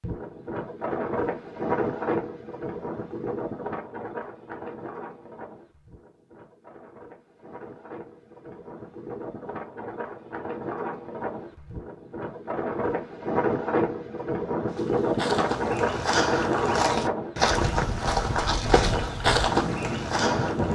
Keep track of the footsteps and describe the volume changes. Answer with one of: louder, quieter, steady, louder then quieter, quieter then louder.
louder.